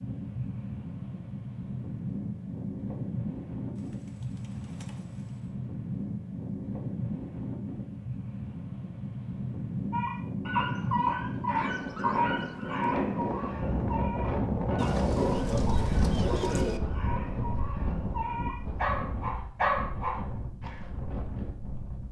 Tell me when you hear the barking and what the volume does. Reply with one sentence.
You can hear the barking from 9.9 to 20.9 s, getting quieter then louder.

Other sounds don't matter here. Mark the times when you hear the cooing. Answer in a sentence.
You can hear the cooing from 3.8 to 5.5 s, from 11.6 to 13.1 s and from 14.8 to 16.8 s.